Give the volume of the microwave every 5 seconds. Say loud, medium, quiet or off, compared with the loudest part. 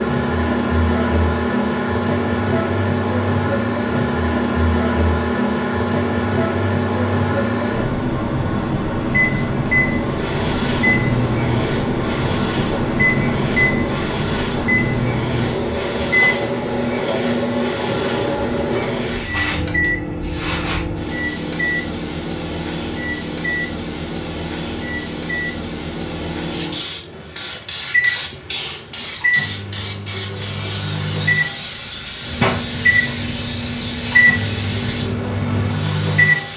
loud, loud, loud, loud, medium, medium, loud, loud.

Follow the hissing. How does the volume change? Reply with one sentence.
The volume of the hissing stays about the same.